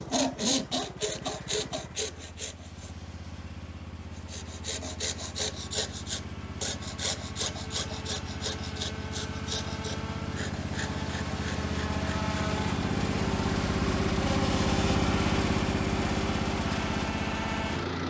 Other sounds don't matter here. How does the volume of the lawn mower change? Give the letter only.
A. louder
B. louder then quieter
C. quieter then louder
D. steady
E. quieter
A.